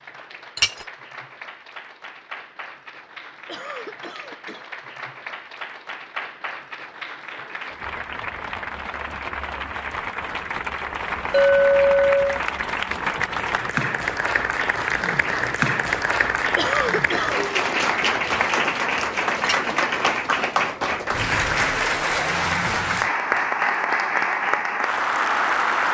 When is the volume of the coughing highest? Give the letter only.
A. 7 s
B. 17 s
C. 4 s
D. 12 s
B.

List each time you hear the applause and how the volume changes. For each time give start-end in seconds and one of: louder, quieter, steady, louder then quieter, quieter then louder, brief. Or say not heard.
0.0-25.8 louder.